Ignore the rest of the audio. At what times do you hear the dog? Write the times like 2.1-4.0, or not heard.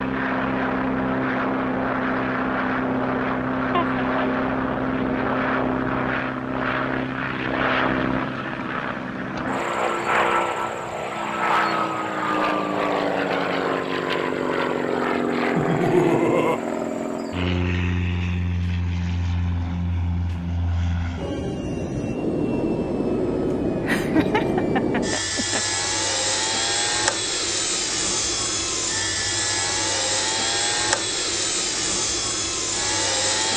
not heard.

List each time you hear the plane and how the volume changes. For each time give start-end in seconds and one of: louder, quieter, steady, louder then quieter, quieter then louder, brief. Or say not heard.
0.0-33.5 steady.